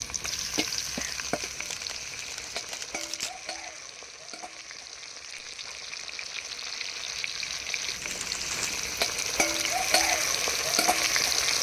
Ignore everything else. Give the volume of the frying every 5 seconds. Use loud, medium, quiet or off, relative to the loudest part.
medium, medium, loud.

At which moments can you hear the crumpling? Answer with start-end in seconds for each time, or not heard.
1.1-3.4, 7.9-8.9.